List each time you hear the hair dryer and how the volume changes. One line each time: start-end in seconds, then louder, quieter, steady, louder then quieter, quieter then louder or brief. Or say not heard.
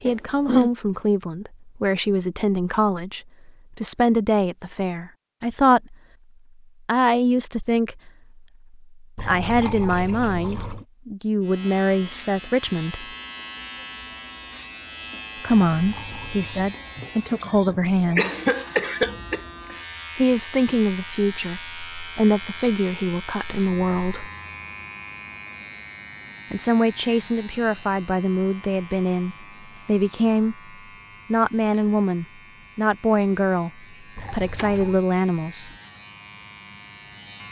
not heard.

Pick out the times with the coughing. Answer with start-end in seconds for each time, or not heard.
0.1-0.7, 16.9-19.4, 34.2-35.0.